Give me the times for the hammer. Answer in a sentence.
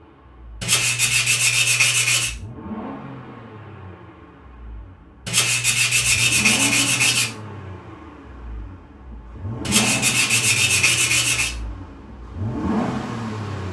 The hammer can't be heard in this clip.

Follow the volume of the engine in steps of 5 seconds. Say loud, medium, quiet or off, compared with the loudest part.
medium, loud, loud.